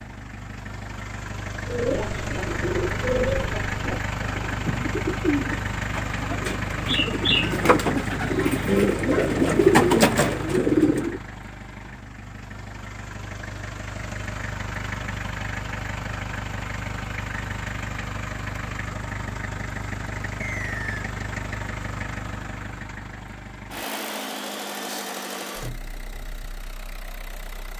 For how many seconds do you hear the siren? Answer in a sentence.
You can't hear the siren here.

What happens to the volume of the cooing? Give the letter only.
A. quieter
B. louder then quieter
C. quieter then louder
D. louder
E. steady
D.